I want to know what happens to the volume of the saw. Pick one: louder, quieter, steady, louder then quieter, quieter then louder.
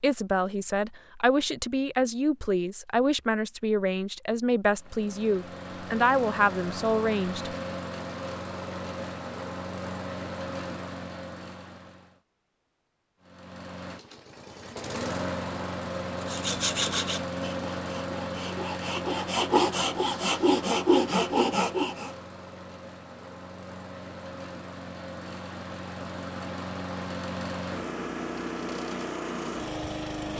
quieter then louder.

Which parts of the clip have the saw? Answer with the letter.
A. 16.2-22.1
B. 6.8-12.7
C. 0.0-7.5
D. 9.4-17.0
A.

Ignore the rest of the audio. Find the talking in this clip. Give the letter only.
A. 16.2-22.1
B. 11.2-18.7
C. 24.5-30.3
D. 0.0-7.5
D.